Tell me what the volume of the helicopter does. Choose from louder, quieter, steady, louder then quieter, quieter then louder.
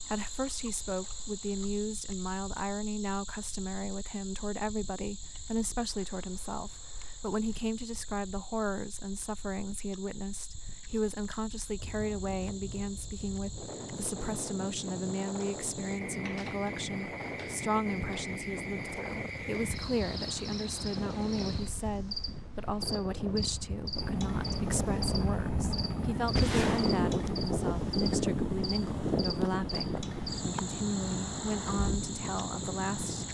quieter.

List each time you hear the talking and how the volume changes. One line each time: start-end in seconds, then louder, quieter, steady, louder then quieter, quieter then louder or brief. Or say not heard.
0.0-33.2 steady.